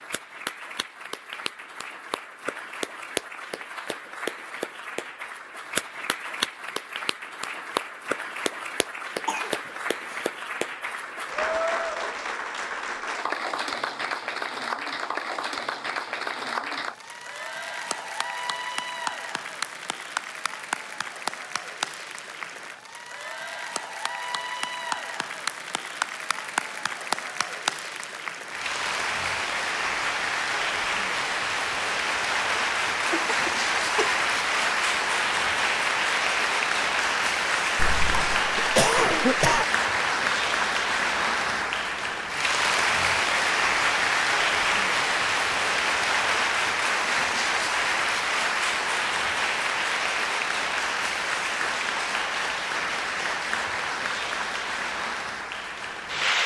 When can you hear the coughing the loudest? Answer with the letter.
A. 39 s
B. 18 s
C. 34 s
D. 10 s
A.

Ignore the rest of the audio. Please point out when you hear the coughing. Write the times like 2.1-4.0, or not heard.
9.2-10.2, 33.1-34.2, 37.8-39.6.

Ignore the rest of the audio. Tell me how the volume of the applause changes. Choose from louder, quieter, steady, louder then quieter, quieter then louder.
louder.